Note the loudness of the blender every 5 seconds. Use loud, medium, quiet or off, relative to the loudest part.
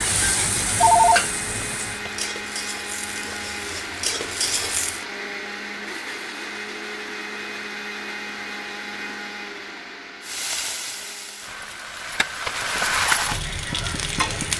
loud, loud, medium.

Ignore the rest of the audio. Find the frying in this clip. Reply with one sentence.
You can hear the frying from 0.0 to 5.0 s and from 10.2 to 14.5 s.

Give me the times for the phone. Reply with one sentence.
The phone can be heard from 0.8 to 2.1 s.